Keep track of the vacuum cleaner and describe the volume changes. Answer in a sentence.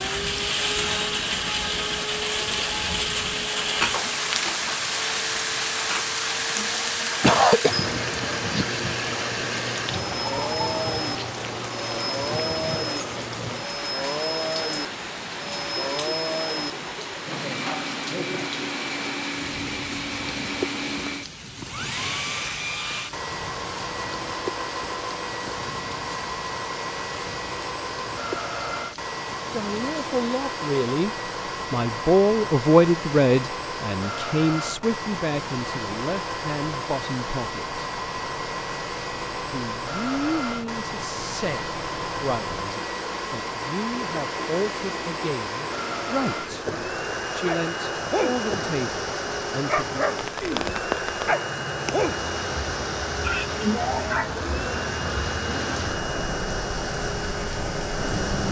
The loudness of the vacuum cleaner stays about the same.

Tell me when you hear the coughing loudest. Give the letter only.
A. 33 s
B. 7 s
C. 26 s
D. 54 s
B.